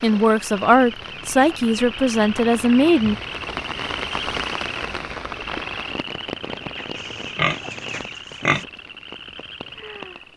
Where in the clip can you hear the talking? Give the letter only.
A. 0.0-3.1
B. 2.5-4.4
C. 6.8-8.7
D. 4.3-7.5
A.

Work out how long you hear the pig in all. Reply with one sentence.
You can hear the pig for 2 seconds altogether.